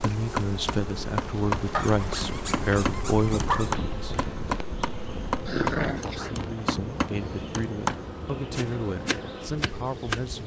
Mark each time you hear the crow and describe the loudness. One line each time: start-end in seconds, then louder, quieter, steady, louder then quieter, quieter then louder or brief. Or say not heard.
not heard.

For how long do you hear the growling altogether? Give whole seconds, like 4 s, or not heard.
3 s.